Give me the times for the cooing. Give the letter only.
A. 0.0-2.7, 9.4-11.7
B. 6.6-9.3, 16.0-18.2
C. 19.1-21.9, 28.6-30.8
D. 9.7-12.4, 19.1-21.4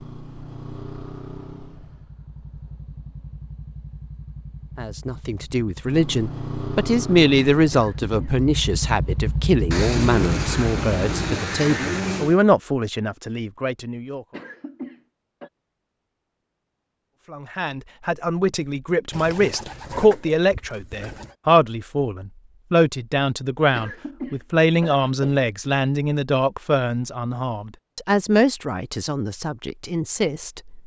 D.